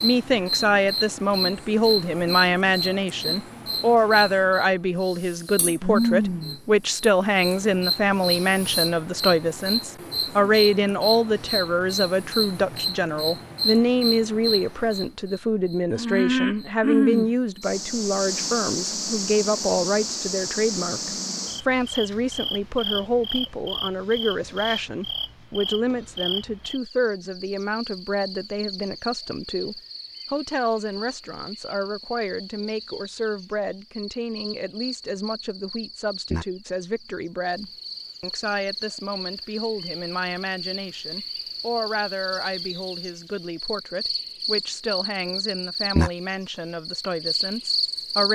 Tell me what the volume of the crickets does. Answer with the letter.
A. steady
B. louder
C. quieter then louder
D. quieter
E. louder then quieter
C.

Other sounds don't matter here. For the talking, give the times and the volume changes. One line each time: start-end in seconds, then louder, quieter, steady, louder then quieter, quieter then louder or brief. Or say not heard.
0.0-48.3 quieter.